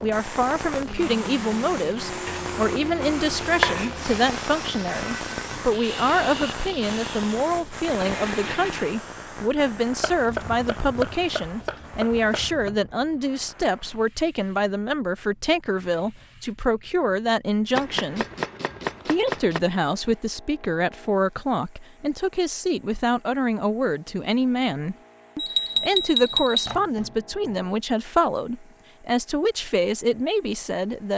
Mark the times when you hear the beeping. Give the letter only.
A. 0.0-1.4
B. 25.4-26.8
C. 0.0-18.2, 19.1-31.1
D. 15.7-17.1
B.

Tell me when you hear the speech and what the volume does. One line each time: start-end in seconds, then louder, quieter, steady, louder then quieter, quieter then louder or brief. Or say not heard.
0.0-18.2 steady
19.1-31.1 steady.